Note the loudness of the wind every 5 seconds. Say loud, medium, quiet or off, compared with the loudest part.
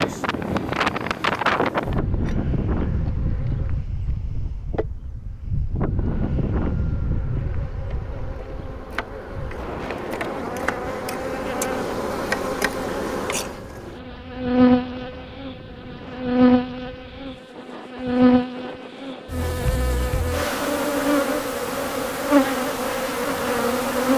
loud, medium, quiet, quiet, quiet.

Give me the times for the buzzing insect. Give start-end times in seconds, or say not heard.
0.0-3.9, 5.9-24.1.